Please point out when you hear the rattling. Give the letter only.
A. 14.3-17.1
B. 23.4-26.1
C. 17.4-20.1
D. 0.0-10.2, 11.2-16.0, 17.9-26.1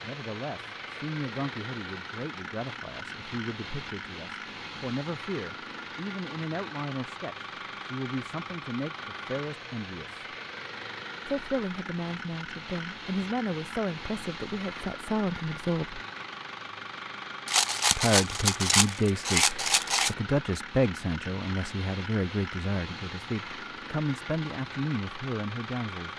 C.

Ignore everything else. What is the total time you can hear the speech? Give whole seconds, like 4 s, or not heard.
23 s.